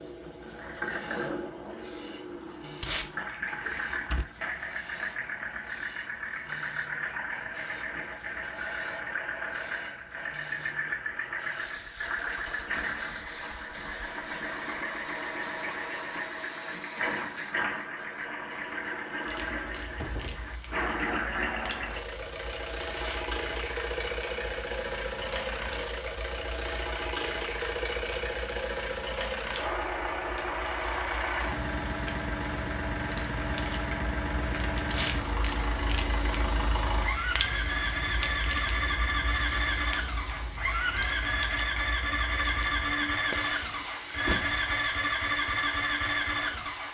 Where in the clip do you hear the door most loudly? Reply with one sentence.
The loudest moment of the door is at 44 seconds.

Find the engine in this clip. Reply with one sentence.
You can hear the engine from 0.0 to 46.8 s.